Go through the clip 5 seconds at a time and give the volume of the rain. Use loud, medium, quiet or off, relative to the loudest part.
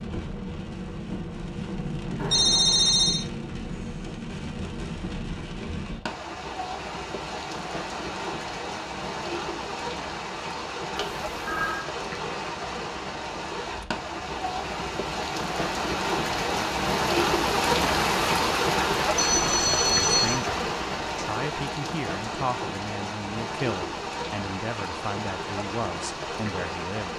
medium, medium, medium, loud, medium, medium.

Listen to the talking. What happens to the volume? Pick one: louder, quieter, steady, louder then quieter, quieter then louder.
steady.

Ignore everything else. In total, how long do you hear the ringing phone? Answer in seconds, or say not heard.
3 s.